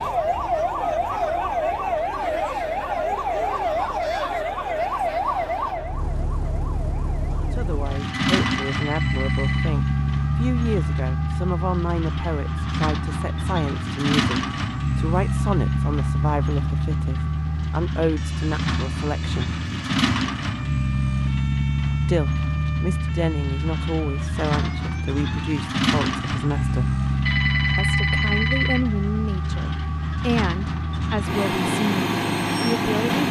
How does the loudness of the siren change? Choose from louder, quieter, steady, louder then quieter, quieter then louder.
quieter.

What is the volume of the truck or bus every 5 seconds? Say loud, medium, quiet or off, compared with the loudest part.
quiet, loud, loud, loud, loud, loud, loud.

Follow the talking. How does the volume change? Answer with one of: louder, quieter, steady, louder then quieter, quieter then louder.
steady.